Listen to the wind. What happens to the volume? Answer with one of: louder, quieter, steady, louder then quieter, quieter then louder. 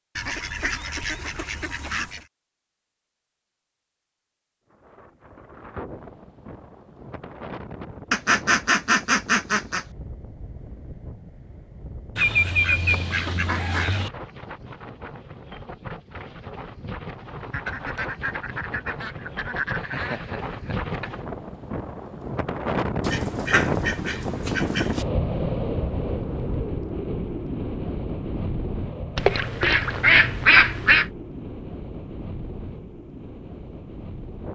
louder then quieter.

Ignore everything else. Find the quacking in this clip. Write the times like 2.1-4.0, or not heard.
0.1-2.2, 8.1-9.8, 12.2-14.1, 17.5-20.2, 23.0-25.1, 29.1-31.1.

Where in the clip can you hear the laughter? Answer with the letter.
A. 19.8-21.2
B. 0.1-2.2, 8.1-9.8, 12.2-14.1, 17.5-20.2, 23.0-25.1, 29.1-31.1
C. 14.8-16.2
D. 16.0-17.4
A.